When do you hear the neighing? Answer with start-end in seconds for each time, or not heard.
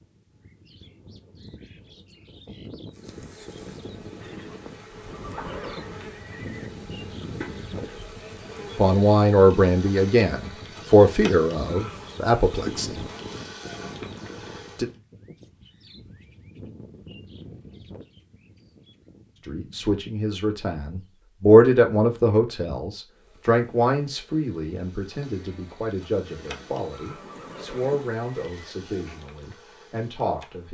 4.2-6.7, 26.2-28.8.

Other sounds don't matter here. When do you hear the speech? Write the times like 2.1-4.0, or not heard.
8.8-13.1, 19.4-30.6.